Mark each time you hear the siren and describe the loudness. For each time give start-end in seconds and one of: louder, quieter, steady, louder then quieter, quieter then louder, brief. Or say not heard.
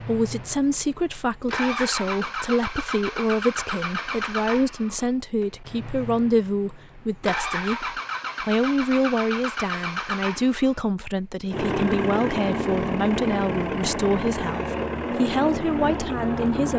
not heard.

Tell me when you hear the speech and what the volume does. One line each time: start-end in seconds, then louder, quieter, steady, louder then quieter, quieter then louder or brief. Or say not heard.
0.1-16.7 steady.